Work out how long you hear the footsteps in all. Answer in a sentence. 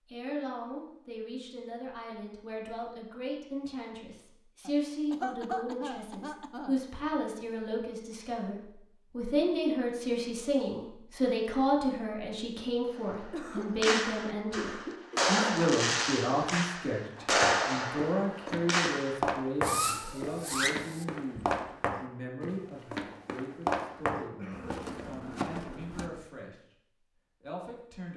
The footsteps can be heard for 9 seconds in total.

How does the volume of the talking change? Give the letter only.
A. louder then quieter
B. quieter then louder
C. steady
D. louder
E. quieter
A.